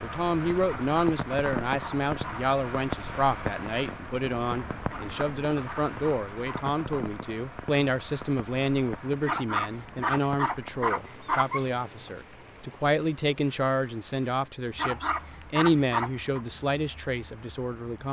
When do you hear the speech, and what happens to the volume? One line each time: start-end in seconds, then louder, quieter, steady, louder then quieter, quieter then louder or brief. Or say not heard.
0.0-18.0 steady.